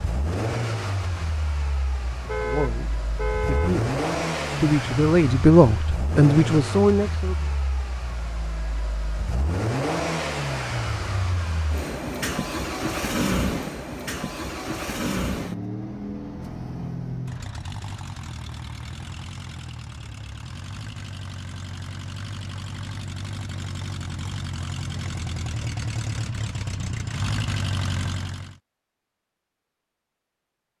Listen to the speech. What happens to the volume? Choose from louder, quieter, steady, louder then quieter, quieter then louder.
louder.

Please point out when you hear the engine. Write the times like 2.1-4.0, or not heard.
0.0-28.6.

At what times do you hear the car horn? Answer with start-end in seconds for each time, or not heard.
2.1-3.9.